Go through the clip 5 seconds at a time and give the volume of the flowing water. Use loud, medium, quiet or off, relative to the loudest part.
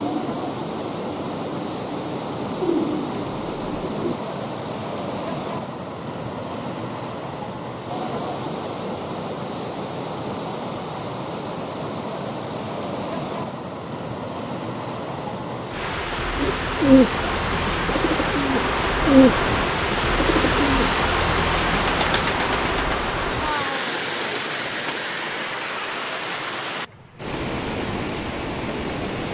medium, medium, medium, loud, loud, medium.